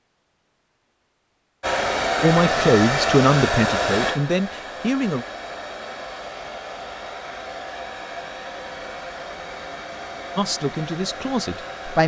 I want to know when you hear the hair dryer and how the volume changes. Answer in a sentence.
The hair dryer can be heard from 1.6 to 12.0 s, getting quieter.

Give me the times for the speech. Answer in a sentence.
The speech can be heard from 2.2 to 5.2 s and from 10.3 to 12.0 s.